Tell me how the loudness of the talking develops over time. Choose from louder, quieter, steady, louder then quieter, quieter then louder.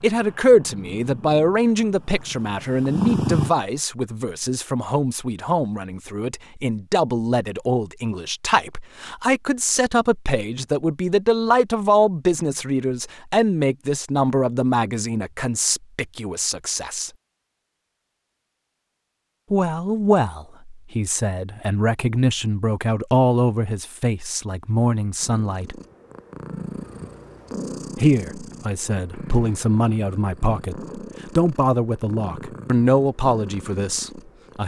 steady.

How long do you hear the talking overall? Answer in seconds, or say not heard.
30 s.